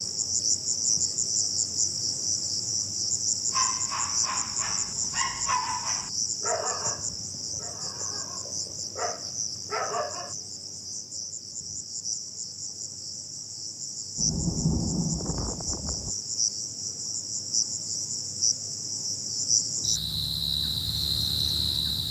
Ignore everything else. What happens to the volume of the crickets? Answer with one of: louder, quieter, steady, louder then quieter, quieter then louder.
quieter then louder.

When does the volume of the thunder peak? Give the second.
15 s.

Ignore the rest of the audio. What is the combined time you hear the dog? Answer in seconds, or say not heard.
7 s.